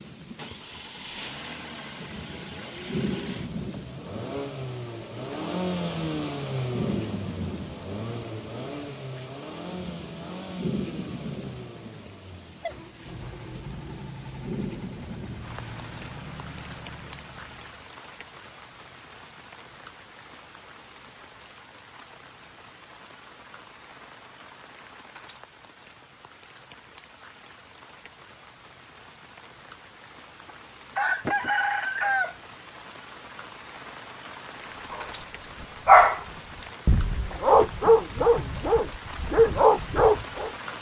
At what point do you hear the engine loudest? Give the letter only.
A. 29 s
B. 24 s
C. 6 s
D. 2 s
C.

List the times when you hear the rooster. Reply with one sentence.
You can hear the rooster from 30.4 to 32.4 s.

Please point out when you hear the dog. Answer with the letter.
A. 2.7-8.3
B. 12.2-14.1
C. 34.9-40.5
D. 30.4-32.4
C.